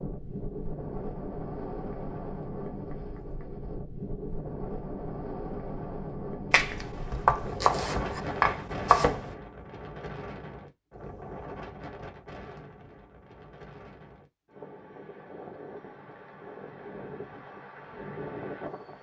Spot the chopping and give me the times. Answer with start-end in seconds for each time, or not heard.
6.5-9.3.